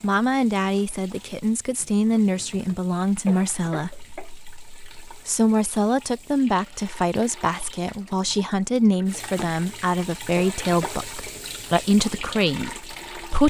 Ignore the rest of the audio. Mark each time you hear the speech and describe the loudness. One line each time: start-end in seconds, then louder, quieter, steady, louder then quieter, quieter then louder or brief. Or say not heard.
0.0-13.4 steady.